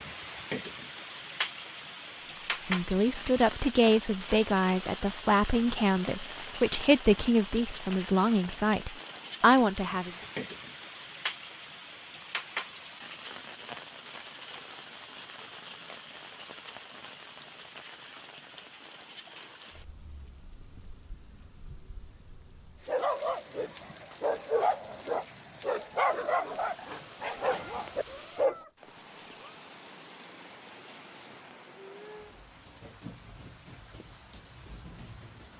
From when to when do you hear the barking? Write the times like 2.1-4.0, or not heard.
22.9-28.6.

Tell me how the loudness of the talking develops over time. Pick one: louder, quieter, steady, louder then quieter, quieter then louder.
steady.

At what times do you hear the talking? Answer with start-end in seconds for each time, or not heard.
2.6-10.1.